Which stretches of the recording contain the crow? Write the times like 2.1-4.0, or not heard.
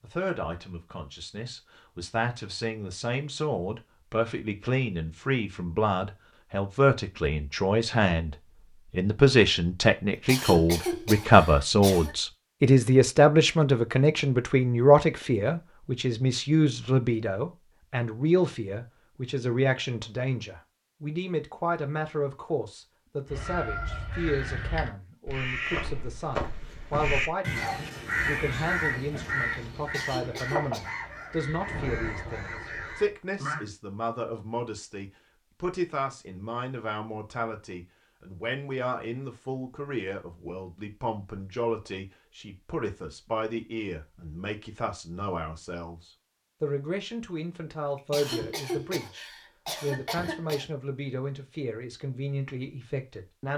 23.2-33.6.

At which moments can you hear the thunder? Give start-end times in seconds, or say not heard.
31.6-33.1.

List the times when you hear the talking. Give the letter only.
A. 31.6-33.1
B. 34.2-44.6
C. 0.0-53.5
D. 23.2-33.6
C.